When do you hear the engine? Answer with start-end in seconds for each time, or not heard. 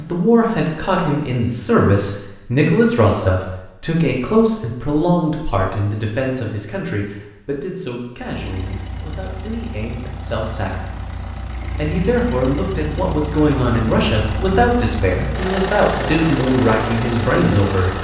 8.3-17.9.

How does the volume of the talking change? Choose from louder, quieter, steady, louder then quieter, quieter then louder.
quieter then louder.